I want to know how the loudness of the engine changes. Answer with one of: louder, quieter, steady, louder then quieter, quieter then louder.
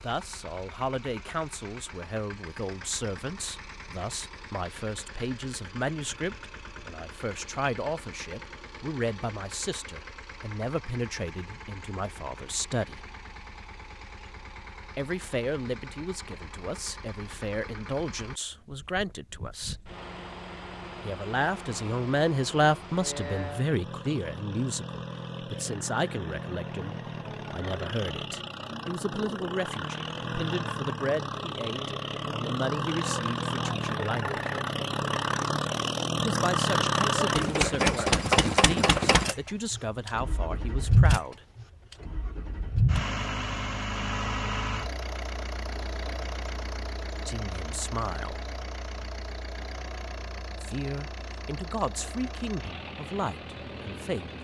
louder then quieter.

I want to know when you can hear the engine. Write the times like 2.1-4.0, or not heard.
0.0-54.3.